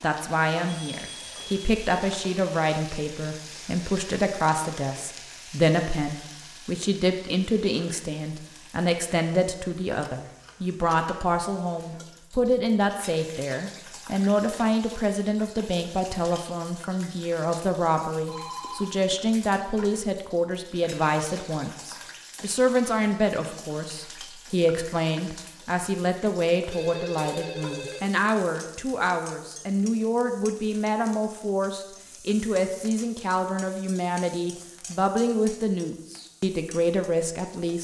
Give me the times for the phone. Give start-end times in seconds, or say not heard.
0.7-2.0, 18.2-20.0, 26.7-28.1.